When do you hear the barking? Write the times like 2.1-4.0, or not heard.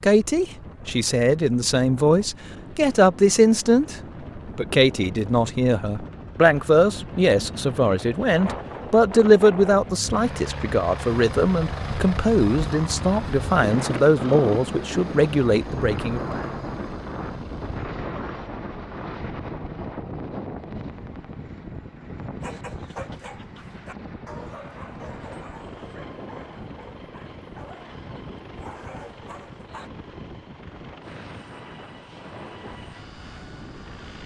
22.4-29.9.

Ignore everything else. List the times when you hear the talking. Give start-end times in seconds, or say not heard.
0.0-16.4.